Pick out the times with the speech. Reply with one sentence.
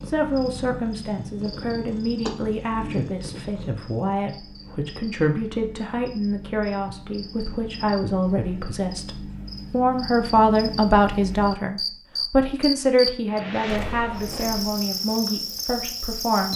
You can hear the speech from 0.1 to 16.5 s.